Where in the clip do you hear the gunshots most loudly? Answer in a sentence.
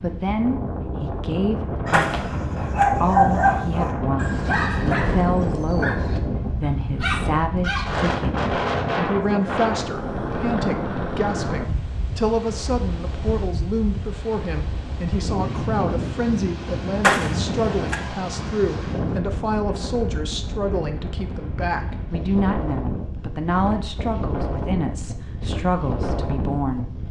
The loudest moment of the gunshots is at 17 seconds.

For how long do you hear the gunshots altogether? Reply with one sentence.
You can hear the gunshots for 2 seconds altogether.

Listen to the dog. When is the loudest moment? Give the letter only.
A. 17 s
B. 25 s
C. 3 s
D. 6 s
C.